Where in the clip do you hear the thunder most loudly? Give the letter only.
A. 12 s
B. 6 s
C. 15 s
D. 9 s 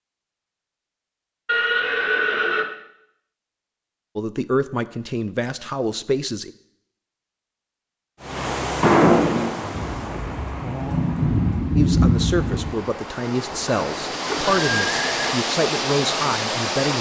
A.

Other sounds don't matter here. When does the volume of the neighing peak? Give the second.
9 s.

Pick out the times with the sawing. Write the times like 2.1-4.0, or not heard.
not heard.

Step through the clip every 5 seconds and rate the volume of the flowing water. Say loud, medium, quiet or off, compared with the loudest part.
off, loud, medium, loud.